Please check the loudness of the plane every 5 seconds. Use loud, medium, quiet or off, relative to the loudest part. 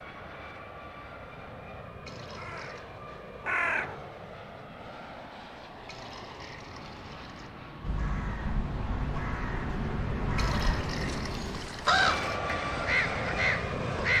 medium, medium, loud.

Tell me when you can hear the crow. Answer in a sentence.
You can hear the crow from 2.4 to 4.0 s and from 7.8 to 14.1 s.